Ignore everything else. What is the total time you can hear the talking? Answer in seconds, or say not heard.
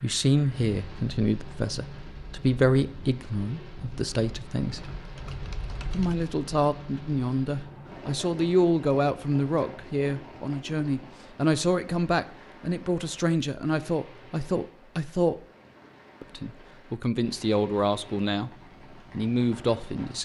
18 s.